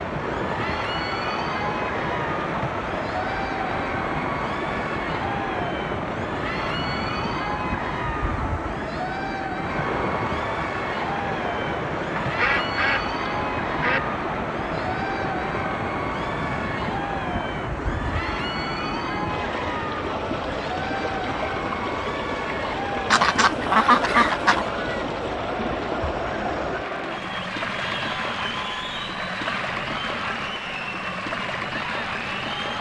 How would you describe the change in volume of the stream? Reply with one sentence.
The loudness of the stream stays about the same.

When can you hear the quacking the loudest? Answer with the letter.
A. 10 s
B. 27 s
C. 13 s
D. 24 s
D.